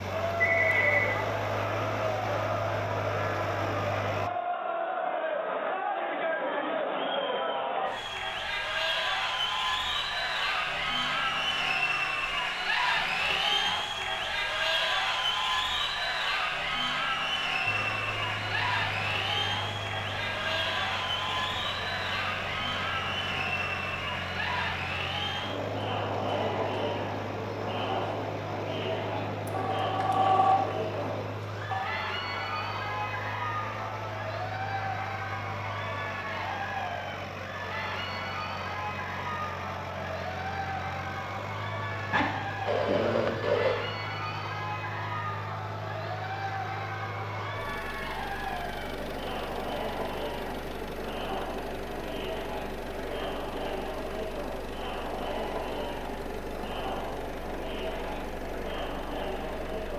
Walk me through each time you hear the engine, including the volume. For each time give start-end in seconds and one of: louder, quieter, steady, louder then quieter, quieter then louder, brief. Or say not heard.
0.0-4.3 steady
17.6-59.9 steady.